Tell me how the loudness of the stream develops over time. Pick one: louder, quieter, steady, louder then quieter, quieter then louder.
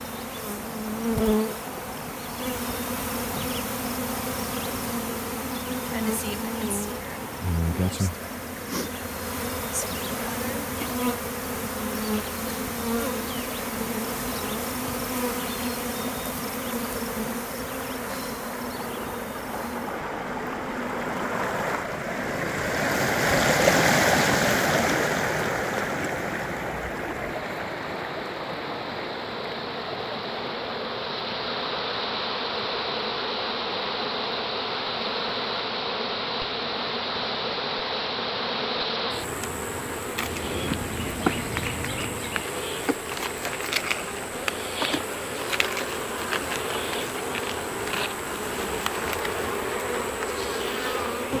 louder then quieter.